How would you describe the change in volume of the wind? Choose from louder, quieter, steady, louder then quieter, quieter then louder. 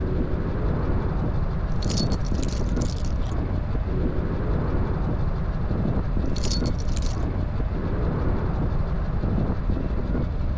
steady.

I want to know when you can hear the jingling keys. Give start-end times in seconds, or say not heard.
1.7-3.4, 6.2-7.2.